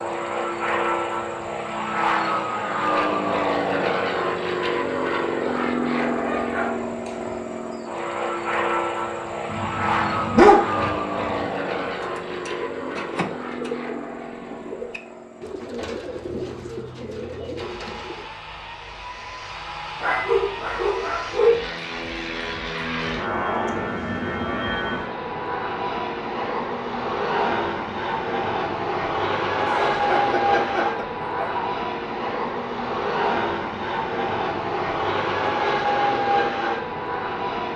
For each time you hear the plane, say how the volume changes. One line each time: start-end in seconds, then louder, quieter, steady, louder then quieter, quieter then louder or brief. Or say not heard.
0.0-37.7 quieter then louder.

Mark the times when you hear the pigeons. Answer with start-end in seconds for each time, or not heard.
11.8-18.3.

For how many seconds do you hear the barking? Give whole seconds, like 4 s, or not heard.
7 s.